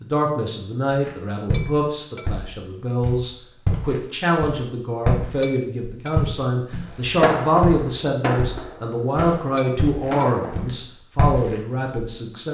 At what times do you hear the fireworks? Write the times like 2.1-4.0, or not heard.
7.0-10.7.